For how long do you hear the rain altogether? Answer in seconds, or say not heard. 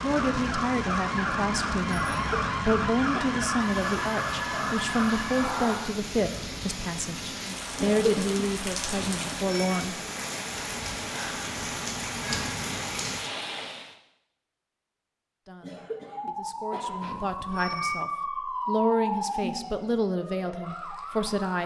14 s.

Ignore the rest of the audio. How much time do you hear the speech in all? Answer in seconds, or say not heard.
16 s.